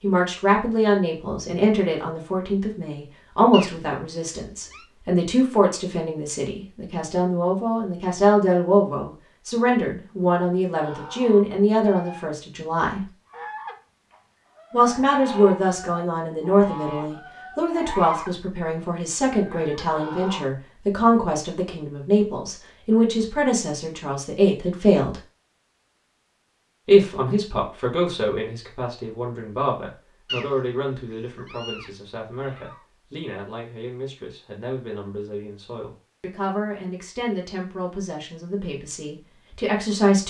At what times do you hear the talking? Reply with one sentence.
You can hear the talking from 0.0 to 13.0 s, from 14.7 to 25.2 s and from 26.9 to 40.2 s.